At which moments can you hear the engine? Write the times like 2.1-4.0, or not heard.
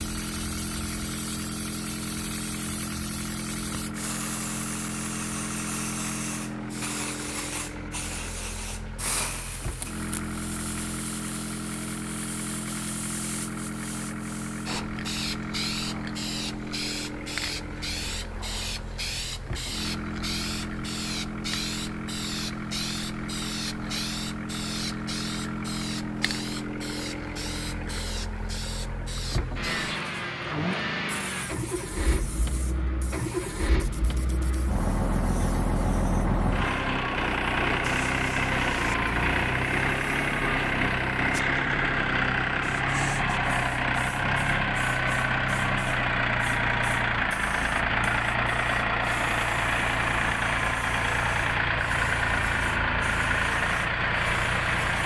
0.0-55.0.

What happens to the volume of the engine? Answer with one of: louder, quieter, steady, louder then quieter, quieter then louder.
louder.